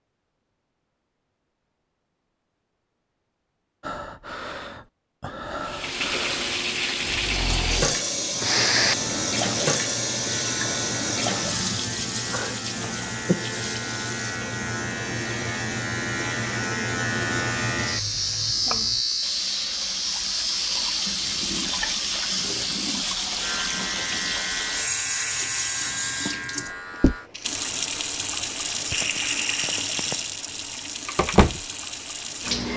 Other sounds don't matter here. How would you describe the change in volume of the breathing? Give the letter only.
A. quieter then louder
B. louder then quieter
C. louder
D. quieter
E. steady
C.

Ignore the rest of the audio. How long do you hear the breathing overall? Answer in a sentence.
The breathing can be heard for 5 seconds in total.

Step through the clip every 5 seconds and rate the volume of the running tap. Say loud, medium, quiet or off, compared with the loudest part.
off, loud, loud, medium, loud, loud, loud.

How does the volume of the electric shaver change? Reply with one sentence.
The loudness of the electric shaver goes up, then down.